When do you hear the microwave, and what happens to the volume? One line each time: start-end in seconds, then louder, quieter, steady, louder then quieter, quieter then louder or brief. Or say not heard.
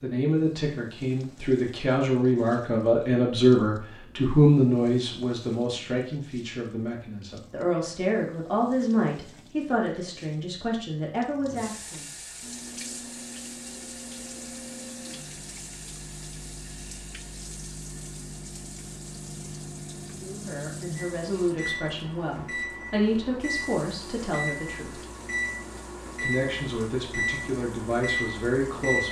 12.4-29.0 louder.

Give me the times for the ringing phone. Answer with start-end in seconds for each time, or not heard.
not heard.